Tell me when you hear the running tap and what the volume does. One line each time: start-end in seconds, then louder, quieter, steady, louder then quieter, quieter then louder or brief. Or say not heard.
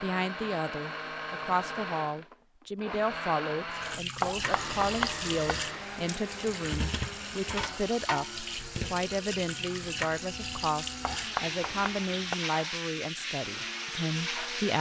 3.7-14.7 steady.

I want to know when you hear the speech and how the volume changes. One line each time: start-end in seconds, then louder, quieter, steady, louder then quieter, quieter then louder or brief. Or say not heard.
0.0-14.7 steady.